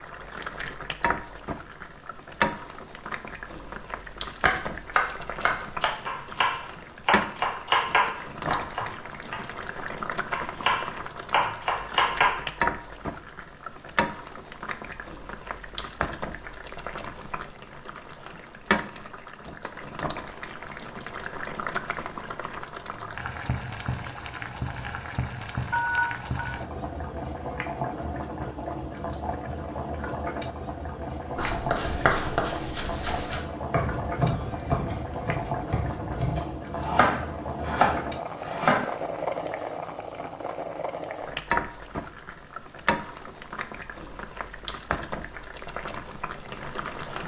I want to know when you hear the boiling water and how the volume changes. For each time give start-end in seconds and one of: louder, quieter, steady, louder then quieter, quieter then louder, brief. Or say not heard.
0.0-47.2 steady.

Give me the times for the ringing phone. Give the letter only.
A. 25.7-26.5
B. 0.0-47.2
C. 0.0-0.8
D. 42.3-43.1
A.